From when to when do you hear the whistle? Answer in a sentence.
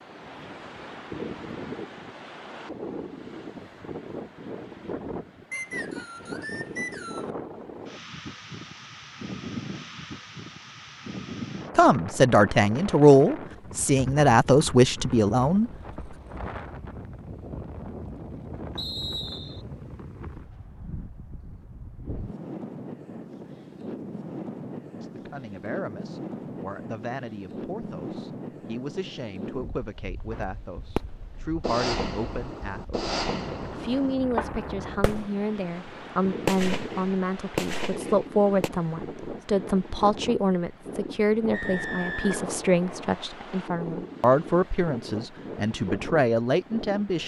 The whistle can be heard from 5.5 to 7.3 s, from 18.8 to 19.6 s and from 41.5 to 43.2 s.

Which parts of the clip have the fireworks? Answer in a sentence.
The fireworks can be heard from 30.3 to 35.5 s and from 36.5 to 38.7 s.